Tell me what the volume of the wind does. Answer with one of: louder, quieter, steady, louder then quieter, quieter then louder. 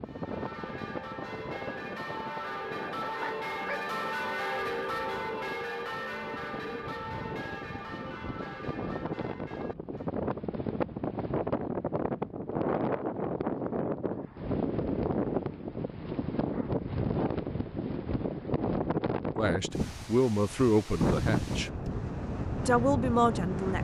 louder.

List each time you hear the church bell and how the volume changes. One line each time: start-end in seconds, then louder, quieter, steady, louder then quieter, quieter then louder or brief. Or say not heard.
0.0-10.1 louder then quieter.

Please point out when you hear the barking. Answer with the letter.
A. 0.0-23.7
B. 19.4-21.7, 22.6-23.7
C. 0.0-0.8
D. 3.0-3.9
D.